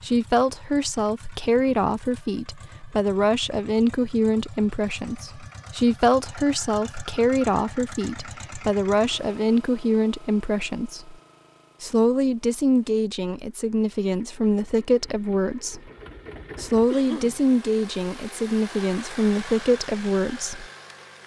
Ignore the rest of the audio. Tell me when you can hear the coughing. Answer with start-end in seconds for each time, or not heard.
16.9-17.4.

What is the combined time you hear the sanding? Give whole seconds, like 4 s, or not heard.
not heard.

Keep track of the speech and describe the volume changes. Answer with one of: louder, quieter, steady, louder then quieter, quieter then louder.
steady.